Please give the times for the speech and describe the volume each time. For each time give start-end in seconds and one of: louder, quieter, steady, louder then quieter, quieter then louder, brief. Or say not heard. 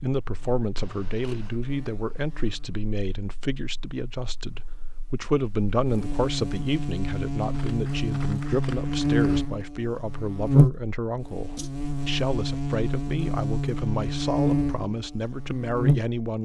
0.0-16.4 steady.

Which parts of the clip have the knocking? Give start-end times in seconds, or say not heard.
not heard.